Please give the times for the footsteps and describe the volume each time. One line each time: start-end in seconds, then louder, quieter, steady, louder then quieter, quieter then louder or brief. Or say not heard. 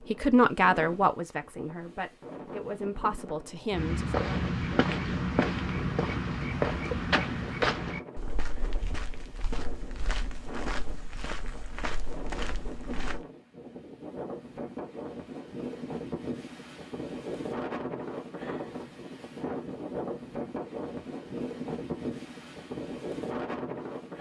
3.7-13.2 quieter.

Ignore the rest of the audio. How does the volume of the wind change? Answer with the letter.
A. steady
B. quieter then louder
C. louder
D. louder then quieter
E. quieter
C.